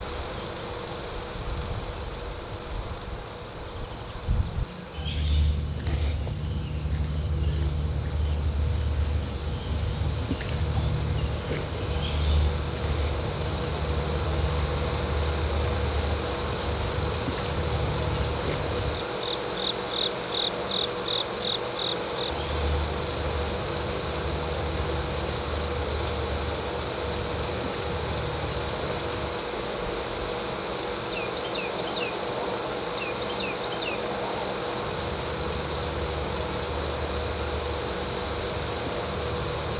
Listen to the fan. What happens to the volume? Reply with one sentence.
The volume of the fan goes up.